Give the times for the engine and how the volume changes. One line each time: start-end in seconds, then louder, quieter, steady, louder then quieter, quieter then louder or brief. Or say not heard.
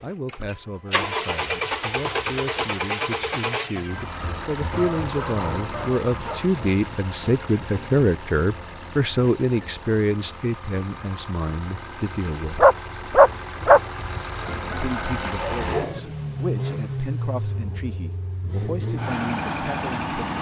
0.0-20.3 quieter then louder.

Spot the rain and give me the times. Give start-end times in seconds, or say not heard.
not heard.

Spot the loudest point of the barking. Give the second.
13 s.